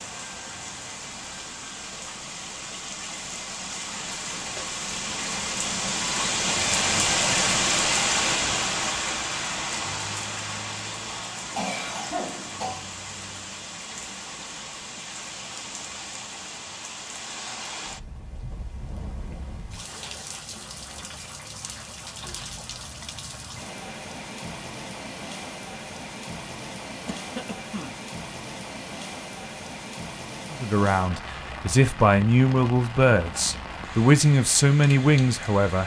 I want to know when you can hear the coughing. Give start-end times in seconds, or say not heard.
11.6-12.8, 27.1-27.9.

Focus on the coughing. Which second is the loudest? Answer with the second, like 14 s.
12 s.